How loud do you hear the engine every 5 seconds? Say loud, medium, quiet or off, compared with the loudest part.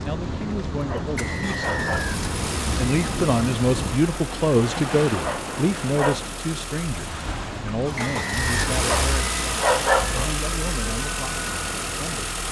medium, loud, loud.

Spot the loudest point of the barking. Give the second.
10 s.